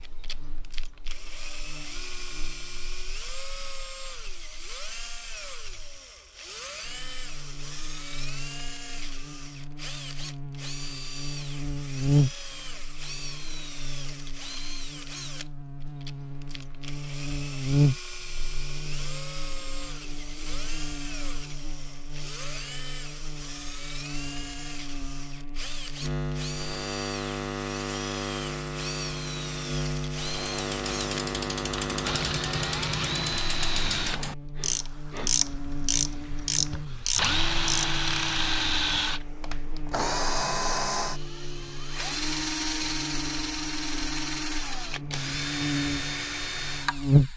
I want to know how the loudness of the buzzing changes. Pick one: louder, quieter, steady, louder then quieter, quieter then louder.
louder then quieter.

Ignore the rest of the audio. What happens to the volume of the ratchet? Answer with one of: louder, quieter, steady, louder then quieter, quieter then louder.
louder.